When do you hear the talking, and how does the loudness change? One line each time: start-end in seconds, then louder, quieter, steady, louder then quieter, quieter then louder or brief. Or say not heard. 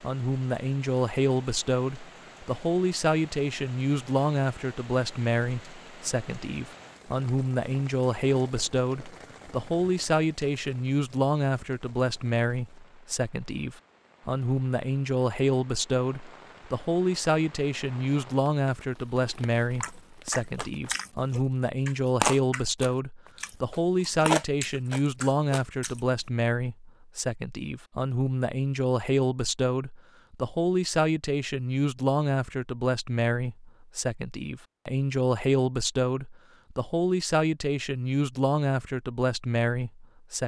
0.0-40.4 steady.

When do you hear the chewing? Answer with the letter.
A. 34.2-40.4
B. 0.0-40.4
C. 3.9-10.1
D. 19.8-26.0
D.